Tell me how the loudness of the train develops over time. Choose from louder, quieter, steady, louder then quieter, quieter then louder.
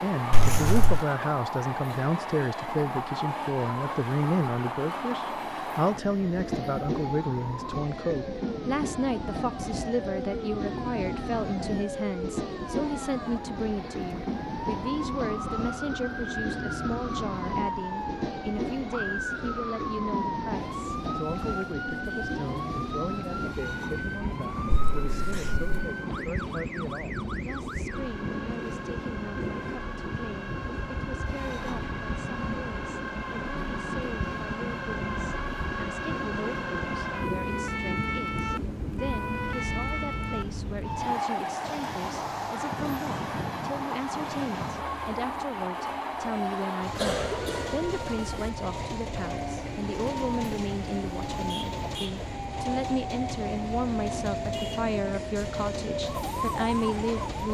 steady.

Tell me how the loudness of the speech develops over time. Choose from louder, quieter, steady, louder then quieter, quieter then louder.
quieter then louder.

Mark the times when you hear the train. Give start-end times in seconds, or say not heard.
0.0-57.4.